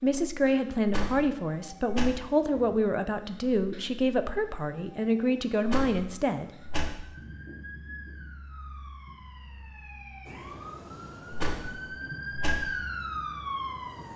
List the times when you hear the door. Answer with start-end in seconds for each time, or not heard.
0.8-2.1, 5.6-6.9, 11.3-12.6.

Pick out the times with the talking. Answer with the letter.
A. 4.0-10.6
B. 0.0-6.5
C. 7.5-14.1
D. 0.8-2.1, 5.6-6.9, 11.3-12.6
B.